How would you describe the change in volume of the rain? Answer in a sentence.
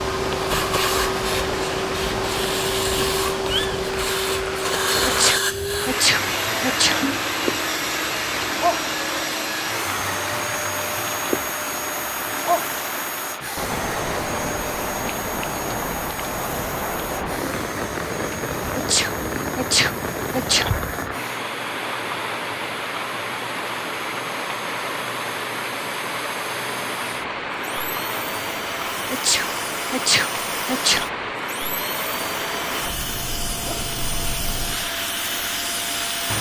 The loudness of the rain stays about the same.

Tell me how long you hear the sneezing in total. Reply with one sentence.
You can hear the sneezing for 6 seconds altogether.